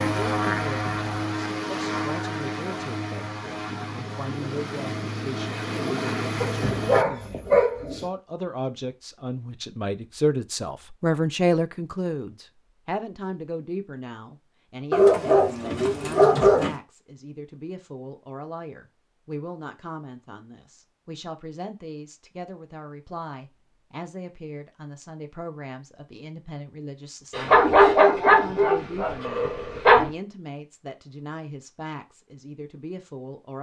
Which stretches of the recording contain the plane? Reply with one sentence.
You can hear the plane from 0.0 to 7.0 s.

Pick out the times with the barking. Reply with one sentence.
The barking can be heard from 6.4 to 8.1 s, from 14.9 to 16.8 s and from 27.3 to 30.1 s.